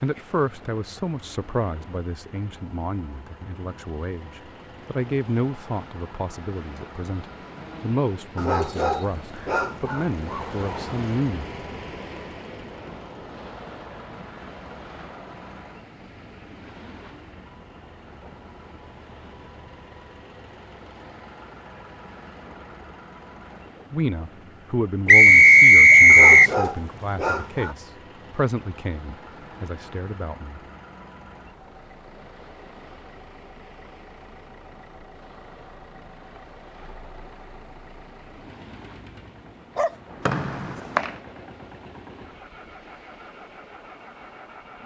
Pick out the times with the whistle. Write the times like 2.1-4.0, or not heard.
8.7-9.7, 25.1-26.6, 40.2-41.1.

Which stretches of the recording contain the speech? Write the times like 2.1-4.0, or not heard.
0.0-11.5, 23.9-30.6.